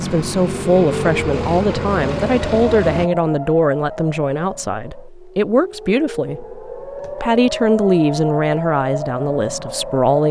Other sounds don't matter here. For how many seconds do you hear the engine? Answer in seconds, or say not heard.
3 s.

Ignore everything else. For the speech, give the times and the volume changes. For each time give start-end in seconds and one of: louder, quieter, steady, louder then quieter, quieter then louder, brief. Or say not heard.
0.0-10.2 steady.